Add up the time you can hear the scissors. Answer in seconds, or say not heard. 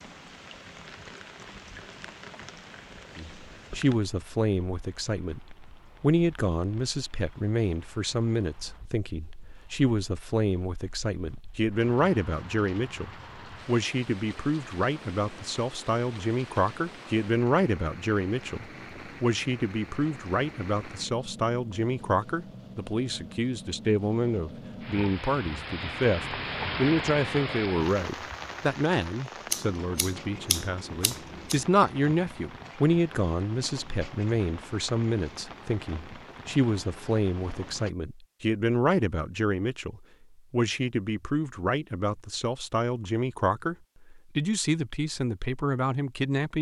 2 s.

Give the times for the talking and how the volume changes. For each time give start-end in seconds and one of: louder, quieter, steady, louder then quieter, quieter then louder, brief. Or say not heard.
3.1-46.5 steady.